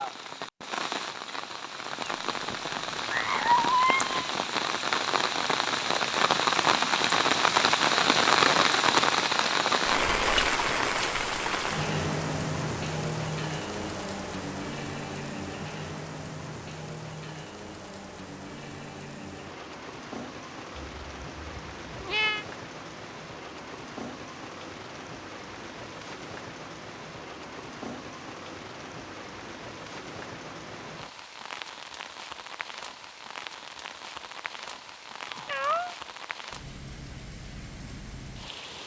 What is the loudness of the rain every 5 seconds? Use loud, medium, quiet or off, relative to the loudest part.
medium, loud, medium, quiet, quiet, quiet, quiet, quiet.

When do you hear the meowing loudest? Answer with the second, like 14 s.
4 s.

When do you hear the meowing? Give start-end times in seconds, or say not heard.
2.0-4.3, 20.8-22.4, 35.3-36.0.